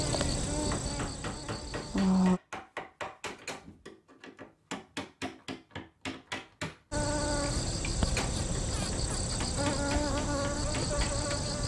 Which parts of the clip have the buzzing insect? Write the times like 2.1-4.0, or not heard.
0.0-2.4, 6.9-11.6.